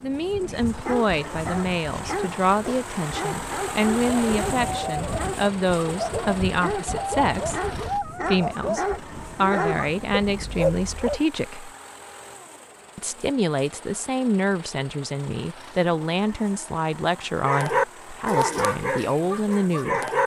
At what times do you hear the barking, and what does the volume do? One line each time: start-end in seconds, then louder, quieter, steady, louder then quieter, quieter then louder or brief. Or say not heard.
0.4-11.2 louder
17.4-20.2 brief.